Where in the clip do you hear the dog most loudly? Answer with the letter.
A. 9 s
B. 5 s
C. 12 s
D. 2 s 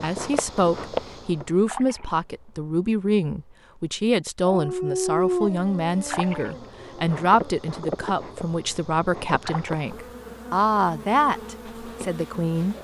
B.